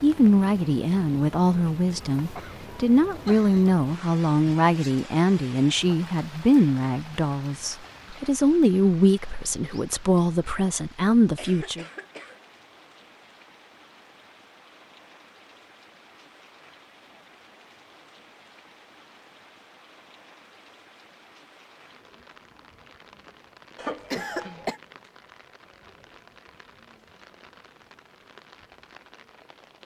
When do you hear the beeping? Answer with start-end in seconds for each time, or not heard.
not heard.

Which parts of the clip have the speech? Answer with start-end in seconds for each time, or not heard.
0.0-11.8.